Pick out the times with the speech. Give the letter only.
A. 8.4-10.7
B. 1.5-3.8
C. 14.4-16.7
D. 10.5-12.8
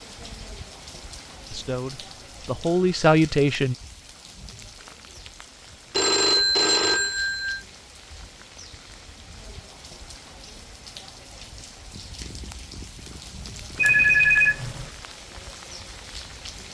B.